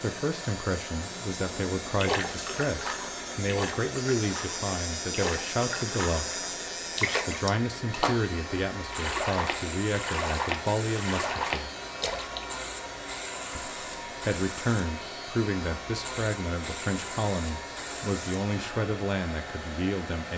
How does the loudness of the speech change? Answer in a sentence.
The volume of the speech stays about the same.